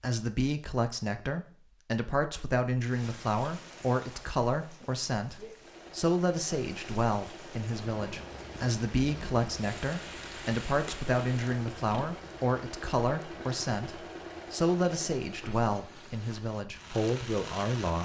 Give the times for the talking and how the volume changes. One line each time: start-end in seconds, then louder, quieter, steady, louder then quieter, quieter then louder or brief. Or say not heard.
0.0-18.0 steady.